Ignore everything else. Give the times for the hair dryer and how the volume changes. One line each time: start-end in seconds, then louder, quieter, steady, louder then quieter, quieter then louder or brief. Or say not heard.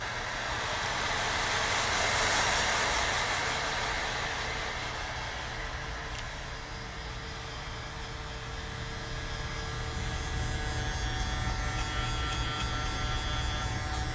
0.0-14.1 quieter.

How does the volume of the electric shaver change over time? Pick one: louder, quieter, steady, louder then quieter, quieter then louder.
louder.